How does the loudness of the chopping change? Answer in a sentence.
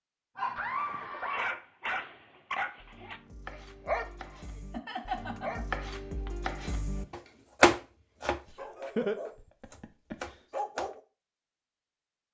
The volume of the chopping goes up, then down.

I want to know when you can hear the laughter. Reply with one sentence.
You can hear the laughter from 0.6 to 1.6 s, from 4.7 to 5.8 s and from 8.5 to 10.2 s.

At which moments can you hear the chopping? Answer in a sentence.
The chopping can be heard from 2.8 to 10.9 s.